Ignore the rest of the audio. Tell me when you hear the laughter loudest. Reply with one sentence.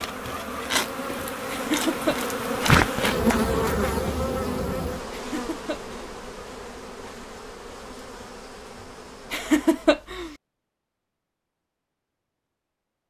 The loudest moment of the laughter is at 10 seconds.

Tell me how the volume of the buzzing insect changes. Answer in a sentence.
The loudness of the buzzing insect goes up, then down.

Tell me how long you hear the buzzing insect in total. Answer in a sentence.
The buzzing insect can be heard for 10 seconds in total.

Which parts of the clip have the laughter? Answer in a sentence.
The laughter can be heard from 1.5 to 2.2 s, from 5.1 to 6.0 s and from 9.3 to 10.3 s.